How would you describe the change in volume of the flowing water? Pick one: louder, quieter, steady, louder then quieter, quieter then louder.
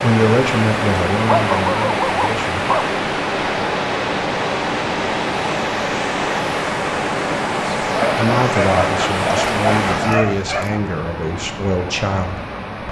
quieter.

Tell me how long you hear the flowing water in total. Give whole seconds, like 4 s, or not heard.
13 s.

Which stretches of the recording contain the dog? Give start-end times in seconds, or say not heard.
1.2-2.9, 8.0-10.8.